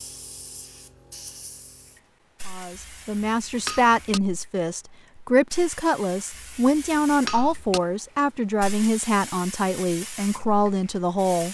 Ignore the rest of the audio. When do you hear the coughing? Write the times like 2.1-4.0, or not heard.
not heard.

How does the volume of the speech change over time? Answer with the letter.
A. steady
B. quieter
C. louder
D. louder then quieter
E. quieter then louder
A.